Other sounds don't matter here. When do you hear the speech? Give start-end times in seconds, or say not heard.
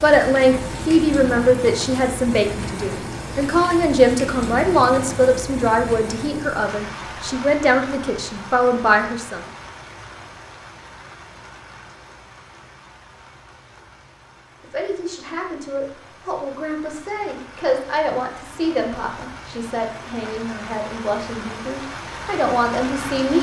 0.0-9.4, 14.6-23.3.